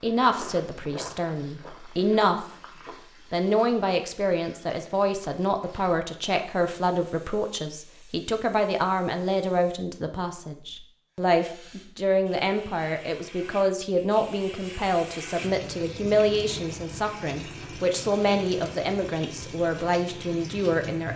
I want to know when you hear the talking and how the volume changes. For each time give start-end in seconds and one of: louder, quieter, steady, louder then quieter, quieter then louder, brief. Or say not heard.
0.0-2.5 brief
3.3-21.1 steady.